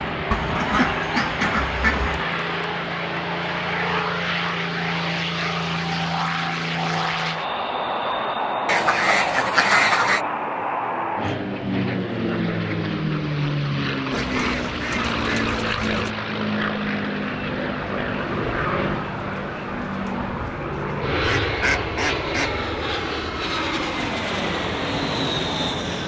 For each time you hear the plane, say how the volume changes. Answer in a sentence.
You can hear the plane from 0.0 to 26.0 s, at a steady volume.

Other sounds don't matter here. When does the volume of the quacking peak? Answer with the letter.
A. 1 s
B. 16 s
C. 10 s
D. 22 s
C.